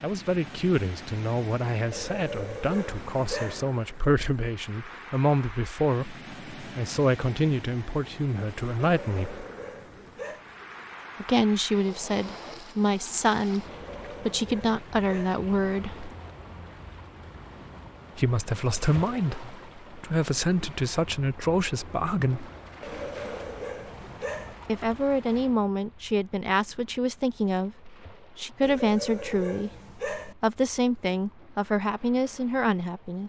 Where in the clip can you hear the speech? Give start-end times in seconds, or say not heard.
0.0-9.4, 11.2-13.7, 14.2-16.1, 18.1-22.5, 24.6-33.2.